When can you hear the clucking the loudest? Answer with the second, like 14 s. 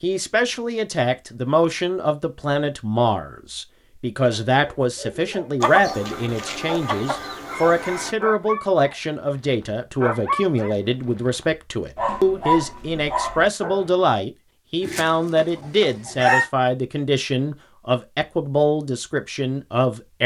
16 s.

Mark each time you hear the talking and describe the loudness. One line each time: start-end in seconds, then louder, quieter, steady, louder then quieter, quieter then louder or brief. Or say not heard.
0.0-20.2 steady.